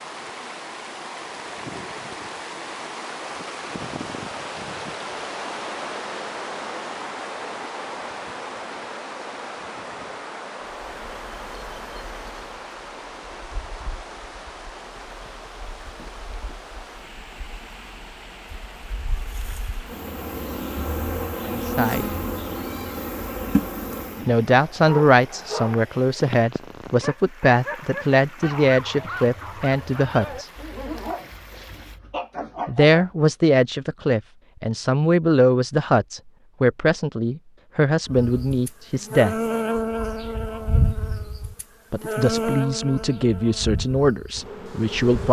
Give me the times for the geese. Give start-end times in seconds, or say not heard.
not heard.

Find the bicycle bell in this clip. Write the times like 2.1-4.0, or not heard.
not heard.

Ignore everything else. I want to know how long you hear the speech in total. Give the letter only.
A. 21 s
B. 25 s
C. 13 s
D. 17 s
D.